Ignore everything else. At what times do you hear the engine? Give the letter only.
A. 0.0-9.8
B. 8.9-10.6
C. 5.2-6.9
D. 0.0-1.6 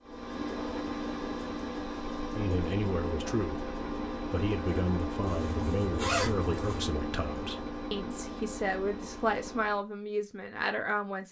A.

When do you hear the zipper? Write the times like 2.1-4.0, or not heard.
5.2-6.9.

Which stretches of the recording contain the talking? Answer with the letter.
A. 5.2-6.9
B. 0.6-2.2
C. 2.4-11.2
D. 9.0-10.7
C.